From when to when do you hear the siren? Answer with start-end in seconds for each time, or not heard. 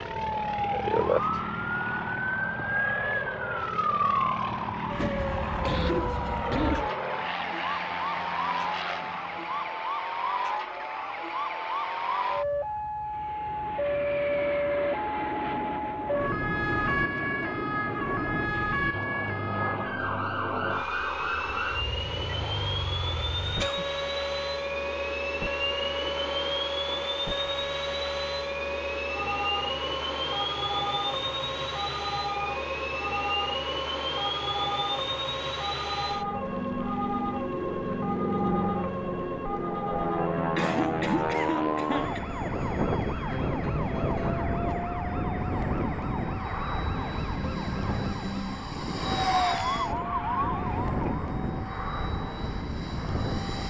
0.0-51.1.